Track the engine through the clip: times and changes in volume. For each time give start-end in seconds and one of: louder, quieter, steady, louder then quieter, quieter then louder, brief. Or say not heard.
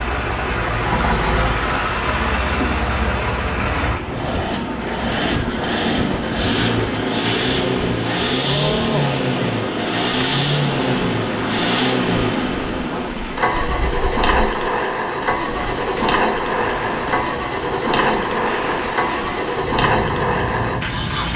0.0-21.3 steady.